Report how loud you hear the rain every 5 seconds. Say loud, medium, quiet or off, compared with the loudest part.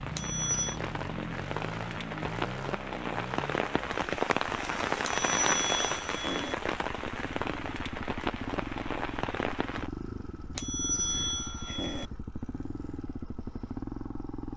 loud, loud, off.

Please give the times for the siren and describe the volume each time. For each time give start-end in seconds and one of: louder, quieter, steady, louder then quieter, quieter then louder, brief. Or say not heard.
not heard.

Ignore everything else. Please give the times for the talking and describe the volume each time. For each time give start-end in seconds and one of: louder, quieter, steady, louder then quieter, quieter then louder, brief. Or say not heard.
not heard.